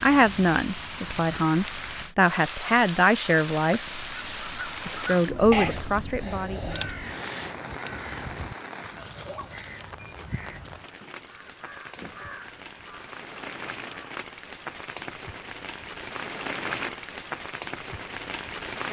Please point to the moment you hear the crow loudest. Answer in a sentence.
The loudest moment of the crow is at 6 seconds.